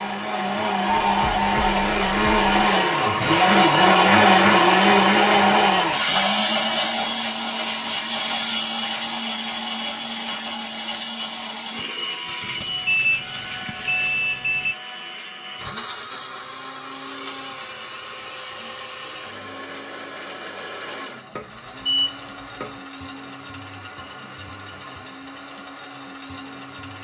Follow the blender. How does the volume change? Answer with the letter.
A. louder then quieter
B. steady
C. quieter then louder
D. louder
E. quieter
E.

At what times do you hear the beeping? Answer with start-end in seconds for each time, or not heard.
0.8-2.5, 12.4-14.8, 21.4-22.8.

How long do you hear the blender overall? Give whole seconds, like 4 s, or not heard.
27 s.